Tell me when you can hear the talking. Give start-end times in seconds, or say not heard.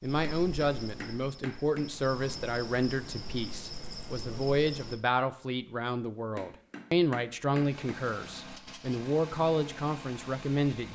0.0-10.9.